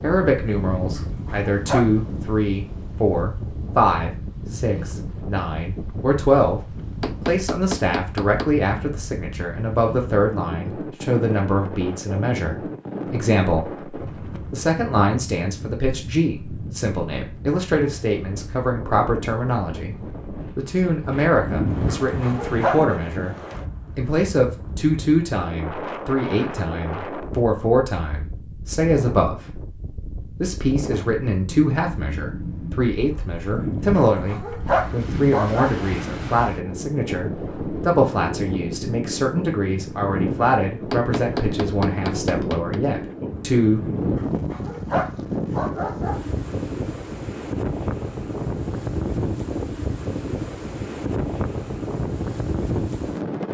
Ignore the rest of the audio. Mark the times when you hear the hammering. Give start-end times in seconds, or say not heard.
7.0-8.5, 40.9-42.8.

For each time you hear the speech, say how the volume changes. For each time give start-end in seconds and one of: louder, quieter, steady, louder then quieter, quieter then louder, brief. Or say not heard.
0.0-23.4 steady
23.9-43.9 steady.